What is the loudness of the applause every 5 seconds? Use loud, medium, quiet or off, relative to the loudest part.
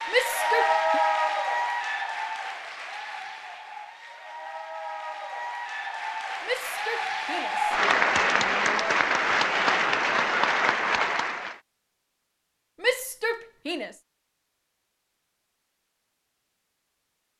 loud, loud, loud, off.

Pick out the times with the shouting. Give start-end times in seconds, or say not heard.
0.1-1.0, 6.4-9.1, 12.8-13.9.